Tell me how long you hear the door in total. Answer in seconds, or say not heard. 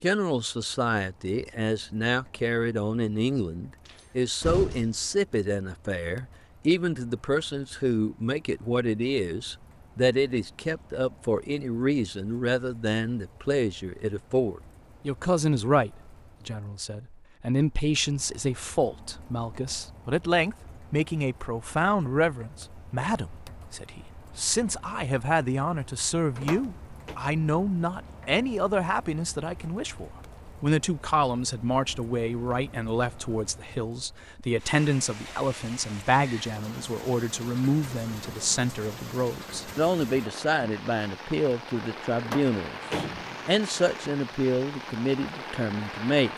3 s.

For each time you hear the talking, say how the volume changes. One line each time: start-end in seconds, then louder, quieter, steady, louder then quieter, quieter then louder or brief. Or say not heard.
0.0-46.3 steady.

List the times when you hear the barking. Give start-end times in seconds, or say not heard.
not heard.